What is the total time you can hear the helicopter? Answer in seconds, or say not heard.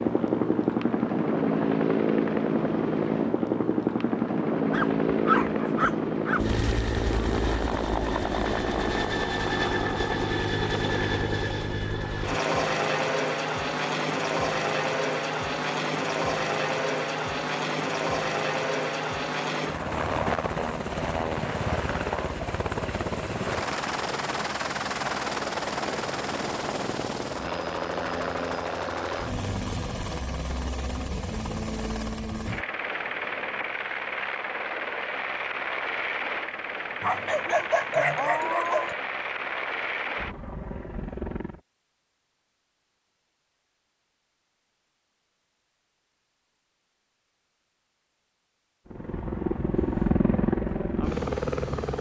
45 s.